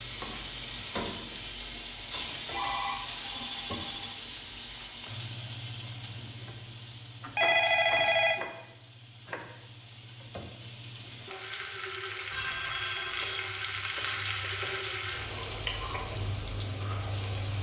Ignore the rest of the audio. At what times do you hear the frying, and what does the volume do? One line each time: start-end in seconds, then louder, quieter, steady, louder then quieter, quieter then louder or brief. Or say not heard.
0.0-17.5 quieter then louder.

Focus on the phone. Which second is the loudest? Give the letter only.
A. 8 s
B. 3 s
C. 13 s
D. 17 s
A.